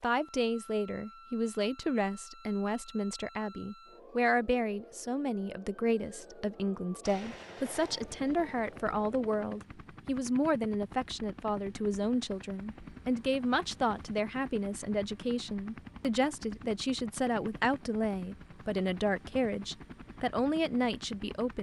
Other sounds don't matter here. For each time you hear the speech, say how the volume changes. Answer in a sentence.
You can hear the speech from 0.0 to 21.5 s, at a steady volume.